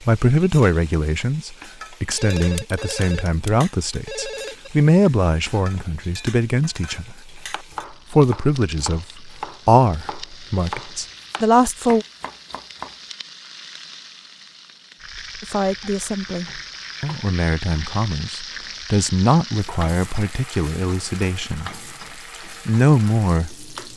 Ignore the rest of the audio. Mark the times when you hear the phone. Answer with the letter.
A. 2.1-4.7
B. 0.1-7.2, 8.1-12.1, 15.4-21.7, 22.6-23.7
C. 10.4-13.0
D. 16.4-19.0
A.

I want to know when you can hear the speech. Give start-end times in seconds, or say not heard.
0.1-7.2, 8.1-12.1, 15.4-21.7, 22.6-23.7.